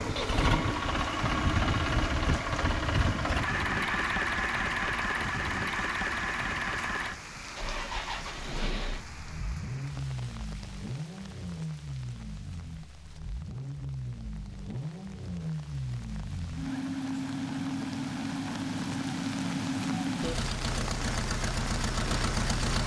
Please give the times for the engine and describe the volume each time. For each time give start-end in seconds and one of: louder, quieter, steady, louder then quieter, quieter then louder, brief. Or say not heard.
0.0-22.8 quieter then louder.